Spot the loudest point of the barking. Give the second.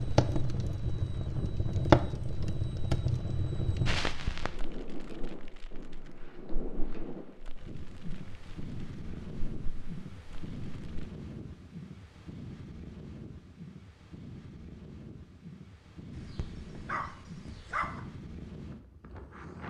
18 s.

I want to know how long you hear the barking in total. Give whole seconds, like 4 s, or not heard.
2 s.